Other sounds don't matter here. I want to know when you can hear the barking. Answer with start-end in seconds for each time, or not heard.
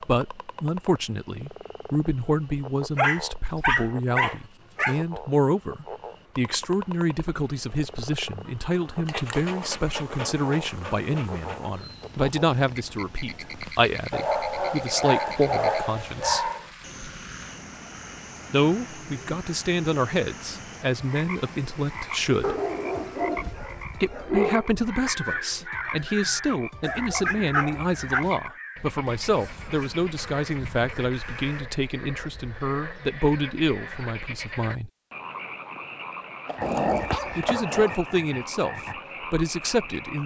3.0-5.0, 9.1-11.6, 14.1-16.6, 22.4-24.7, 26.8-28.3, 36.5-38.0.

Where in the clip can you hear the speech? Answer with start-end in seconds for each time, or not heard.
0.0-16.5, 18.5-22.6, 24.0-34.9, 37.4-40.2.